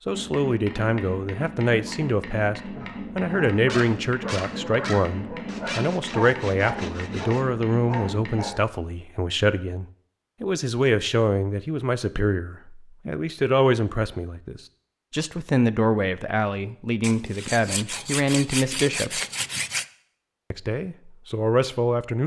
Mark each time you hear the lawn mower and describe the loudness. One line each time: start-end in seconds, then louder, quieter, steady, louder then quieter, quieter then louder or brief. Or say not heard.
not heard.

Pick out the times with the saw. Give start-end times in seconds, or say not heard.
5.5-7.5, 17.0-19.9.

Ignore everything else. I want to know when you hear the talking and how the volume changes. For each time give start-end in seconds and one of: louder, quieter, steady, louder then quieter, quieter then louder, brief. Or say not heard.
0.1-19.2 steady
20.5-22.2 brief.